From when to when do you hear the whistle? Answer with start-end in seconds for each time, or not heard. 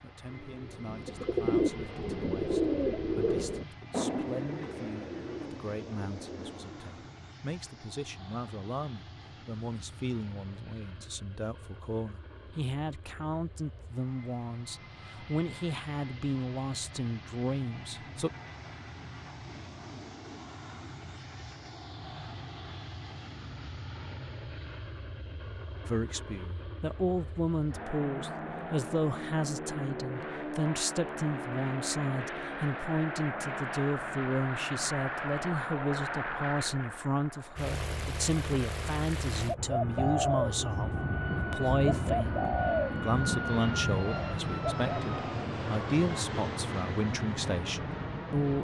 not heard.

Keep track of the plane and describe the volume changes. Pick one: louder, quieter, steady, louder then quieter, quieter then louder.
louder.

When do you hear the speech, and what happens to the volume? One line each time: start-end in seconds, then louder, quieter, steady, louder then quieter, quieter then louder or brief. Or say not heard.
0.0-18.3 louder
25.9-48.5 steady.